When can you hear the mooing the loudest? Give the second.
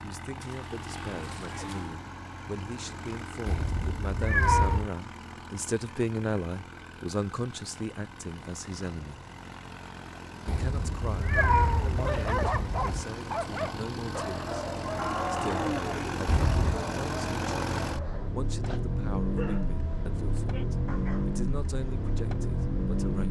16 s.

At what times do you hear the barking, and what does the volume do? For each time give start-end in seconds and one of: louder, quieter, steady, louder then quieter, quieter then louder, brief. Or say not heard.
11.3-21.3 quieter.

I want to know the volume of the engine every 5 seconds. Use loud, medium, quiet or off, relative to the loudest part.
medium, quiet, medium, loud, loud.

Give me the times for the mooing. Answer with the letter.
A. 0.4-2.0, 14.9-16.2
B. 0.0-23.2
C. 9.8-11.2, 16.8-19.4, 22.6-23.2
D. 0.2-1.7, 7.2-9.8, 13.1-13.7
A.